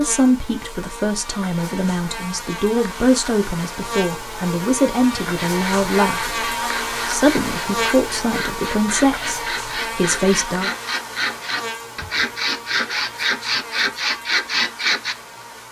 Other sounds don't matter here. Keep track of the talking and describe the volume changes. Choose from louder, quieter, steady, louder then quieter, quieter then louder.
steady.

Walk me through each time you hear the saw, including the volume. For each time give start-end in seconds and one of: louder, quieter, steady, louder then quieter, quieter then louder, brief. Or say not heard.
5.5-15.2 louder.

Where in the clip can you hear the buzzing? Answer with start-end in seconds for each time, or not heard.
0.0-15.6.